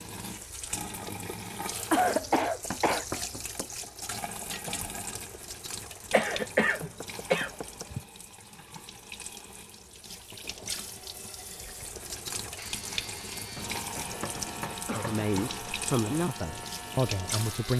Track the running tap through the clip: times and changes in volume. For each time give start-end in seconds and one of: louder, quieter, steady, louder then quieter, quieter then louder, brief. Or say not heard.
0.0-17.7 quieter then louder.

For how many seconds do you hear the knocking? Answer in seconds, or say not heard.
4 s.